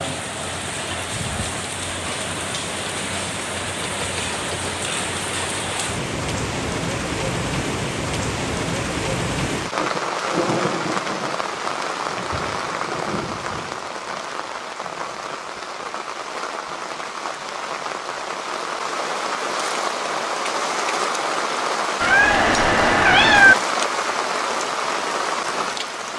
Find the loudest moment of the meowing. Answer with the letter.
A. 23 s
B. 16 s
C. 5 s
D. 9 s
A.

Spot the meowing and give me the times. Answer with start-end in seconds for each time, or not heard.
3.8-4.7, 22.0-23.6.